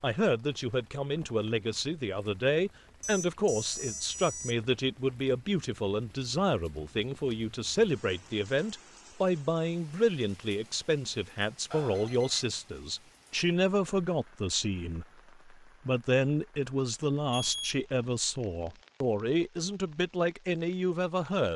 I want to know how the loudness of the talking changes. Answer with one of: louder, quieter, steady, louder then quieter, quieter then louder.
steady.